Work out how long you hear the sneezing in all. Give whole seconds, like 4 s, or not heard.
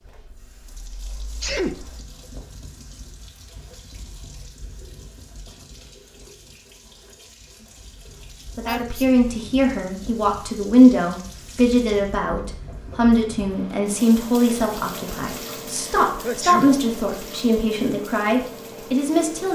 2 s.